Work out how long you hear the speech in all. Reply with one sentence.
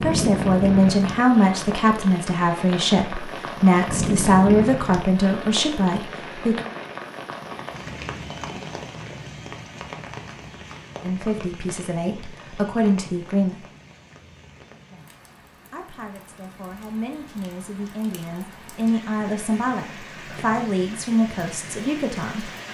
You can hear the speech for 16 seconds altogether.